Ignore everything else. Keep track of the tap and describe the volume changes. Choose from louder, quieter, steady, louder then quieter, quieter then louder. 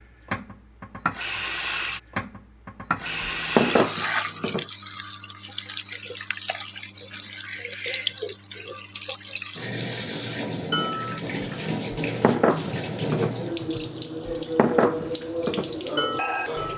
steady.